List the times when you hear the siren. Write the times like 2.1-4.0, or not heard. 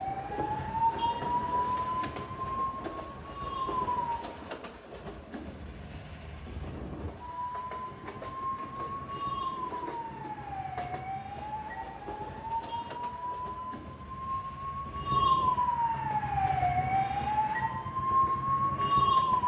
0.0-4.2, 7.2-19.4.